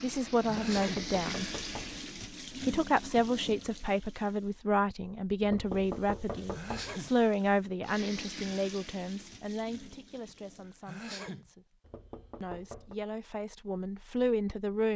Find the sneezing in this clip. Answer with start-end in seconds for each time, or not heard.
0.5-1.1, 6.5-7.2, 10.7-11.5.